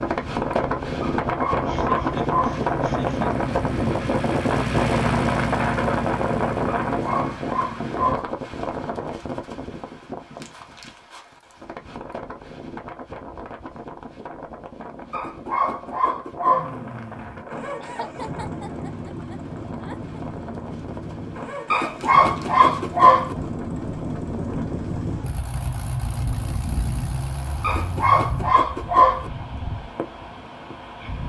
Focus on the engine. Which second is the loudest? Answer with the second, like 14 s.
5 s.